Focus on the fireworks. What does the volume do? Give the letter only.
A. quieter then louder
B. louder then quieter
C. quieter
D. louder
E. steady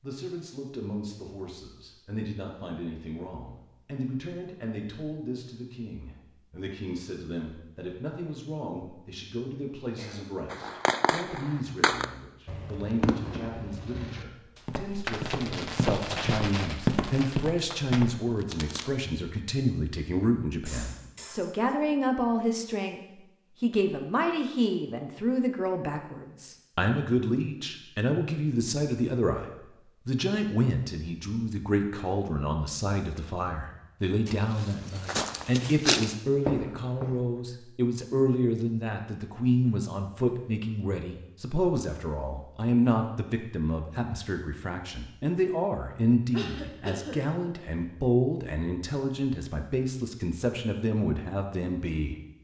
C.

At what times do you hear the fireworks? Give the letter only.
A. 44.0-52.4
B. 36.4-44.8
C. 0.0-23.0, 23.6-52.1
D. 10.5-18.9
D.